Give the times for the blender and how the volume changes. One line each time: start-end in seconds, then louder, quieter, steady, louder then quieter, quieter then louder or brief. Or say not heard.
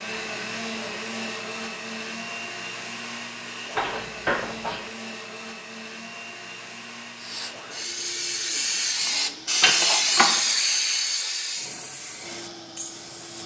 0.0-9.6 quieter
12.1-13.4 brief.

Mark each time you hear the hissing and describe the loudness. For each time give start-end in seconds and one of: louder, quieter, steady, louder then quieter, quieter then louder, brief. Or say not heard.
7.2-13.4 louder then quieter.